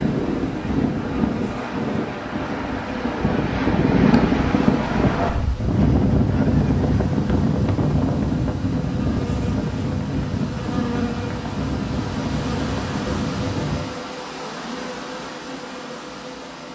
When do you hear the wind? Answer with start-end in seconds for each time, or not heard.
0.0-13.8.